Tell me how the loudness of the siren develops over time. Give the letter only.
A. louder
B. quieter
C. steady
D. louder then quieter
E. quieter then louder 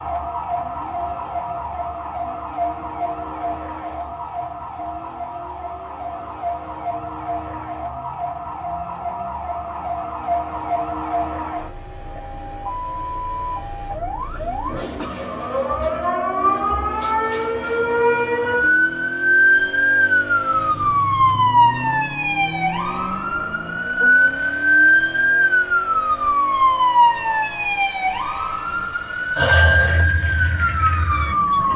A.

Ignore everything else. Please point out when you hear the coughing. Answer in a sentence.
The coughing can be heard from 14.2 to 15.2 s.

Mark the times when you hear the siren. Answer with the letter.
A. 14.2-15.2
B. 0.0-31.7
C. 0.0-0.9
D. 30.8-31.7
B.